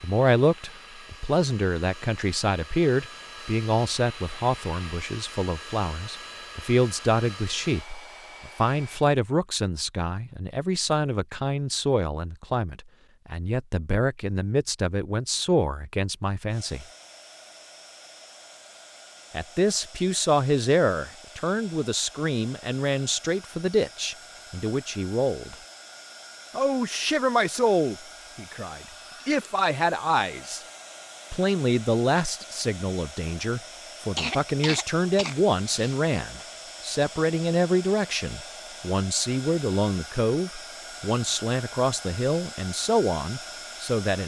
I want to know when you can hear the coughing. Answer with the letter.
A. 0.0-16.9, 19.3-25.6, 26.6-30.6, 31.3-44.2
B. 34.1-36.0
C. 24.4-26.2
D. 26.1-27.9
B.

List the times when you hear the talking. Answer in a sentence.
You can hear the talking from 0.0 to 16.9 s, from 19.3 to 25.6 s, from 26.6 to 30.6 s and from 31.3 to 44.2 s.